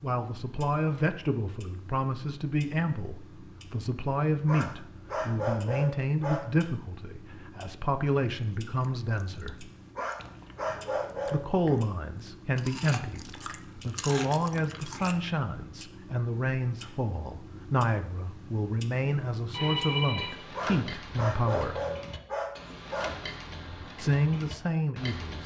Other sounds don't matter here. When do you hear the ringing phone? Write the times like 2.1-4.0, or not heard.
19.5-20.6.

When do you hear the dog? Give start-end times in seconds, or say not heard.
4.5-6.5, 9.9-11.7, 20.6-23.1.